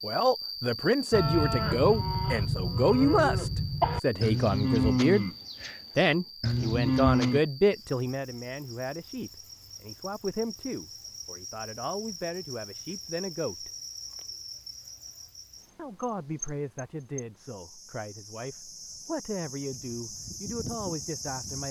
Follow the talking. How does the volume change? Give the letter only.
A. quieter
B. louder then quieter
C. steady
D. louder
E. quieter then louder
A.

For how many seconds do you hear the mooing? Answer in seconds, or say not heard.
6 s.